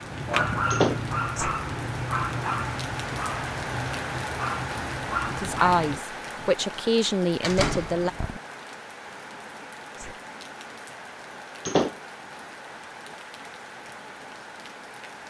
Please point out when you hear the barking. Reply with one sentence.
You can hear the barking from 0.0 to 6.5 s.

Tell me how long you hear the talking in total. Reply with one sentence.
You can hear the talking for 3 seconds altogether.